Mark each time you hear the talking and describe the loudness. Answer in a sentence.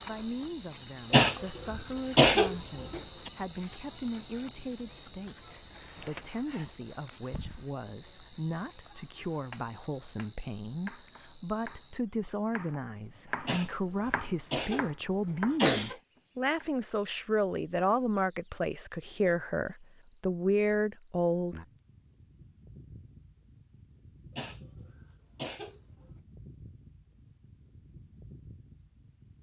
The talking can be heard from 0.1 to 21.6 s, getting louder.